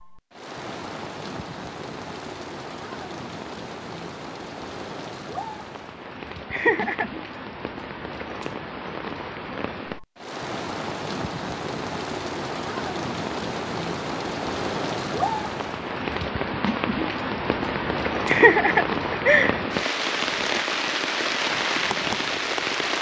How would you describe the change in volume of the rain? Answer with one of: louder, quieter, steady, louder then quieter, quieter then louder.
louder.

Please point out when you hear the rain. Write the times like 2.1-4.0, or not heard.
0.0-22.9.